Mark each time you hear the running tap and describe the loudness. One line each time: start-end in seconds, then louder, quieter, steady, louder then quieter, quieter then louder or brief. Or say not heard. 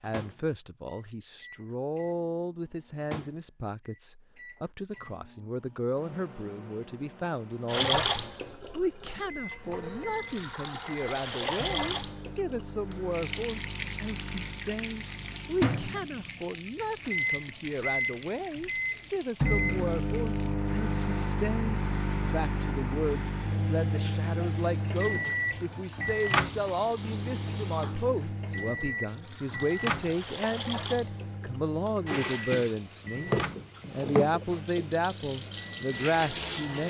7.7-20.6 quieter
23.0-36.8 louder.